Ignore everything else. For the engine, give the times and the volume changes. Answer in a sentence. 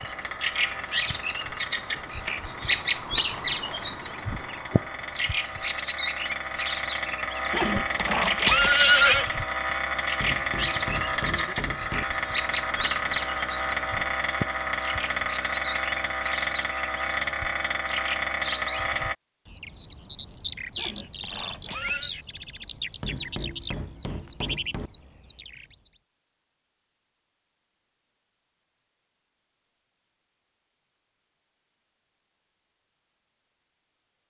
You can hear the engine from 0.0 to 19.1 s, getting louder.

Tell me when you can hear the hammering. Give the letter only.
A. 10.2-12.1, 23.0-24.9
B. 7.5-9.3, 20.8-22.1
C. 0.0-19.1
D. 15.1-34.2
A.